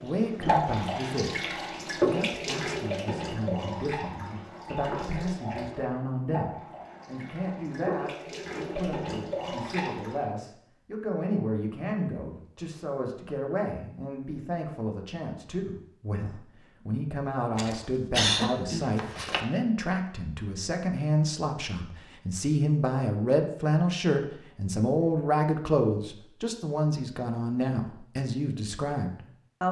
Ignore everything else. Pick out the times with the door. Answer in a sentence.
You can't hear the door here.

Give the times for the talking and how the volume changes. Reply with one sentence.
The talking can be heard from 0.0 to 29.6 s, getting louder.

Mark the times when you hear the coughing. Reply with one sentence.
You can hear the coughing from 17.6 to 19.4 s.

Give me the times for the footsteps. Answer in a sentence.
You can't hear the footsteps here.